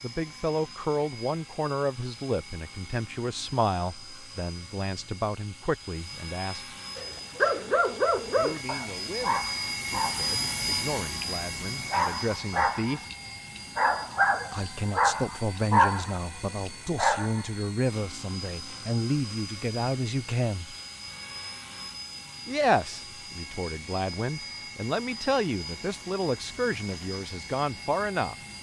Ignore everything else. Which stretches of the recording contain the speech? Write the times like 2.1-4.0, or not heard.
0.0-6.8, 8.3-13.1, 14.5-20.8, 22.4-28.4.